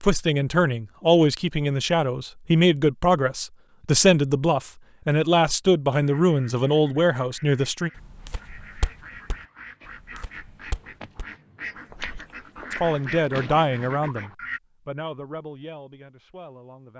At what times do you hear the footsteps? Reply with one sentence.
The footsteps can be heard from 8.0 to 12.9 s.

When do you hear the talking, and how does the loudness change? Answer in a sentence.
The talking can be heard from 0.0 to 7.9 s, at a steady volume; and from 12.7 to 16.9 s, getting quieter.